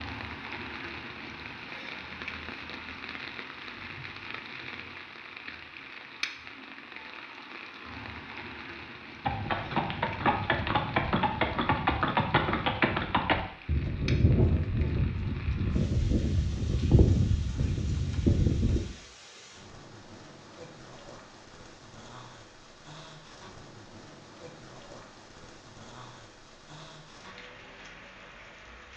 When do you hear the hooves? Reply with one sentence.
The hooves can be heard from 9.2 to 18.8 s.